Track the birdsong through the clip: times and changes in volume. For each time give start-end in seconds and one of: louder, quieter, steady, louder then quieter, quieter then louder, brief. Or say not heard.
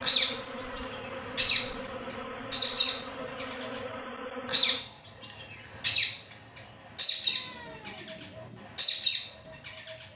0.0-10.1 steady.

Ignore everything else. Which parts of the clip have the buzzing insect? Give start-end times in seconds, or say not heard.
0.0-4.8.